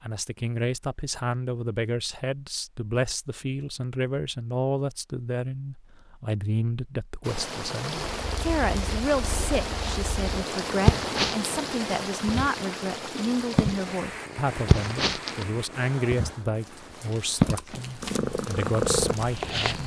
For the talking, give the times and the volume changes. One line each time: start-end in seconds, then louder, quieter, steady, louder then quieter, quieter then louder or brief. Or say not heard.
0.0-19.8 steady.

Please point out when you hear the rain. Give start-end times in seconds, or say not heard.
7.2-19.8.